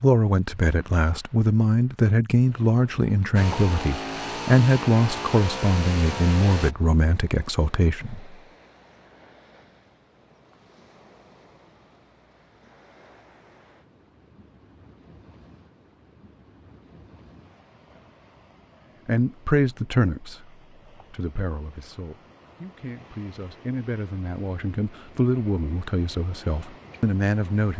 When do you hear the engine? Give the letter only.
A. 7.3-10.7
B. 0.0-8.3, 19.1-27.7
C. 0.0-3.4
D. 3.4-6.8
D.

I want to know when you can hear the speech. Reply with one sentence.
You can hear the speech from 0.0 to 8.3 s and from 19.1 to 27.7 s.